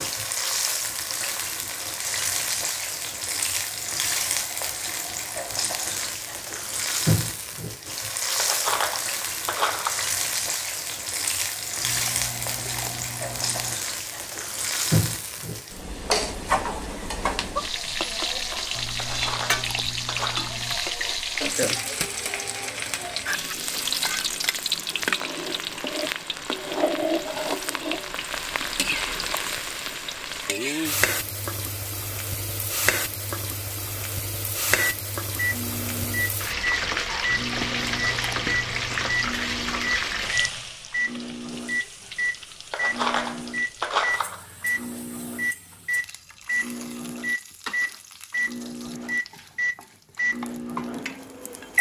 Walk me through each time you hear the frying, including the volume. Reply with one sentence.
The frying can be heard from 0.0 to 51.7 s, getting quieter.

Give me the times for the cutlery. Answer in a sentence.
You can hear the cutlery from 8.3 to 10.1 s, from 19.0 to 20.5 s and from 42.7 to 44.5 s.